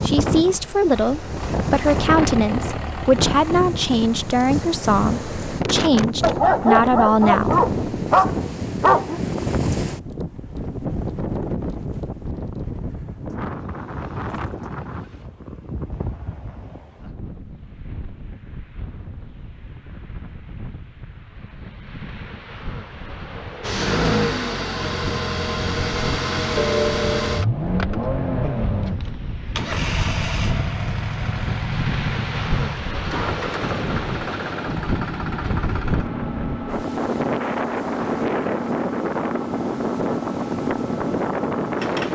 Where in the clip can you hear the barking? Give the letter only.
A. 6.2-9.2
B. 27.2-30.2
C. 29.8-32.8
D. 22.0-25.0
A.